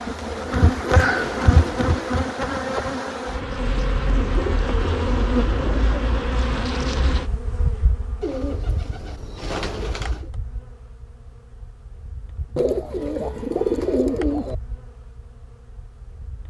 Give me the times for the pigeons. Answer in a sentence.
You can hear the pigeons from 0.1 to 2.1 s, from 4.2 to 6.2 s, from 8.2 to 10.3 s and from 12.6 to 14.6 s.